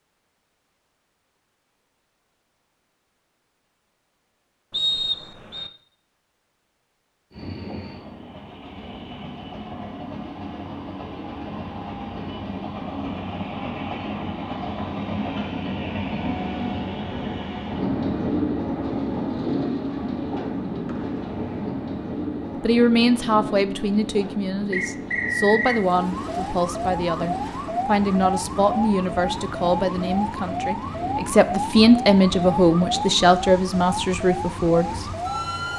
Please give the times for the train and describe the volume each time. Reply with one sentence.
You can hear the train from 7.3 to 35.7 s, getting louder then quieter.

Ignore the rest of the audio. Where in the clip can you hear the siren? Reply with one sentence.
You can hear the siren from 25.6 to 35.7 s.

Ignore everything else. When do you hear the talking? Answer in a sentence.
The talking can be heard from 22.6 to 34.9 s.